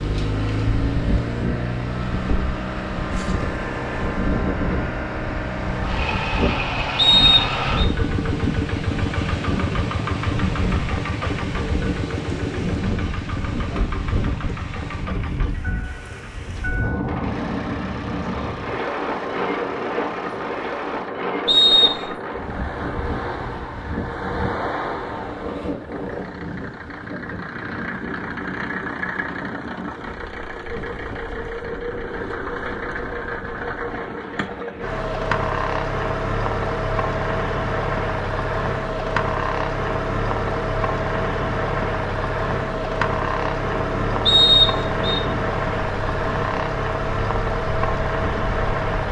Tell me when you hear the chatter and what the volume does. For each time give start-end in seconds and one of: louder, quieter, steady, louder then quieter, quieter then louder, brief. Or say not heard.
not heard.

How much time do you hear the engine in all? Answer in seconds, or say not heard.
49 s.